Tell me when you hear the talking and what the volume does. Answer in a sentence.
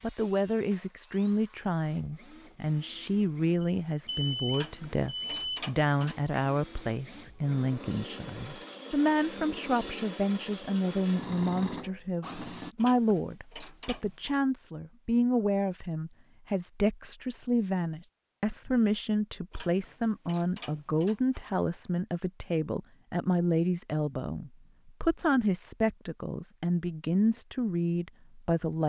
You can hear the talking from 0.0 to 28.8 s, at a steady volume.